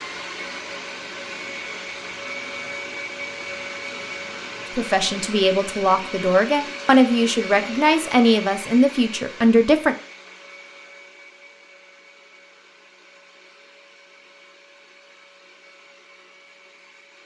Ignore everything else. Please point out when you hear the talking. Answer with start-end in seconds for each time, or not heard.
4.8-9.9.